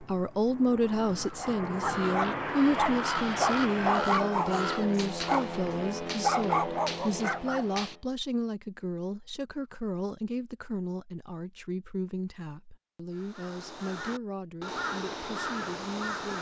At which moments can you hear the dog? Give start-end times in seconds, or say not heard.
1.4-7.8.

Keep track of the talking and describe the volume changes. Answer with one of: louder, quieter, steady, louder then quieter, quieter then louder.
quieter.